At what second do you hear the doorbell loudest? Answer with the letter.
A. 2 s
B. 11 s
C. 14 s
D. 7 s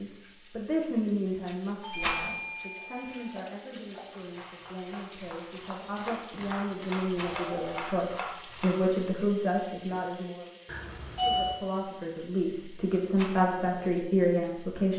B.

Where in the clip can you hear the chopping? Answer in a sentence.
You can hear the chopping from 2.8 to 9.1 s.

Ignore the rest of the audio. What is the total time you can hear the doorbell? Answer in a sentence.
The doorbell can be heard for 4 seconds in total.